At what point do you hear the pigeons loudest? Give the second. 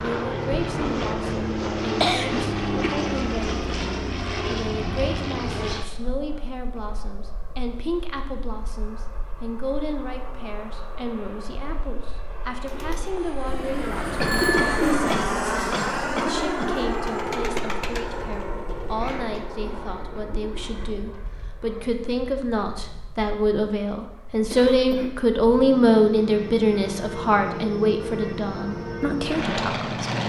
15 s.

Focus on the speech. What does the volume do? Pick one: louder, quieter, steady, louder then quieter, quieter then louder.
louder.